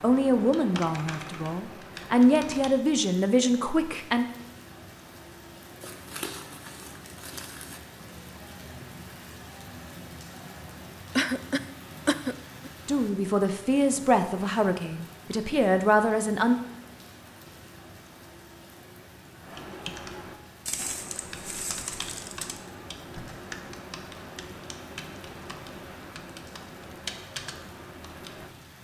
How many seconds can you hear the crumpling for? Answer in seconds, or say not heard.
4 s.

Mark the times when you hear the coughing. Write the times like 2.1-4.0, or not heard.
11.2-12.7.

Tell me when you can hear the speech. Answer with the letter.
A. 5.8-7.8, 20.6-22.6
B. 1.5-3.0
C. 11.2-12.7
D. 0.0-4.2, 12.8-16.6
D.